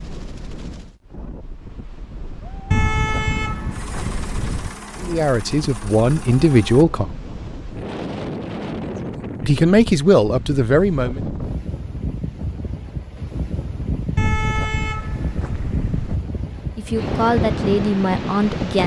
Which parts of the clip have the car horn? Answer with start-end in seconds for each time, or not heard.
2.7-4.7, 14.2-16.2.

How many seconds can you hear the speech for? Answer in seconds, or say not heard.
6 s.